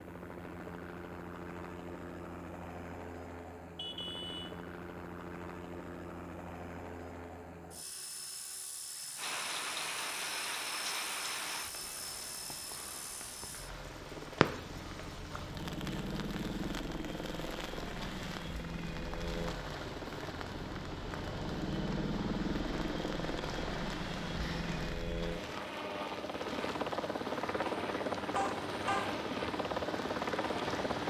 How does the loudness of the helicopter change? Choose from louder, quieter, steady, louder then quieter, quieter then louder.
louder.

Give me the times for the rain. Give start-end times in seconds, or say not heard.
9.2-31.0.